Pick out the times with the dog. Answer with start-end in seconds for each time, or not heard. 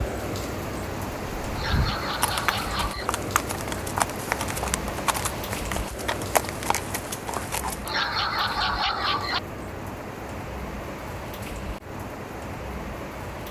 1.6-3.1, 7.8-9.4.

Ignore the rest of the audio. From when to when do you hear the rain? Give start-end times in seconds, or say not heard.
0.0-13.4.